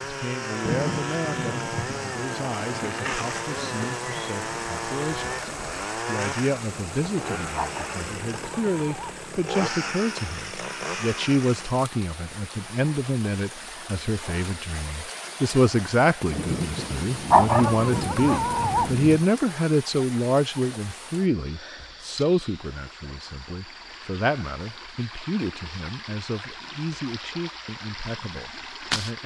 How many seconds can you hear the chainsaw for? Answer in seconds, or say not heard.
12 s.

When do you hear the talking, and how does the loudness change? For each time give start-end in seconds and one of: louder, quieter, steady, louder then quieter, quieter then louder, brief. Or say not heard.
0.0-29.2 louder then quieter.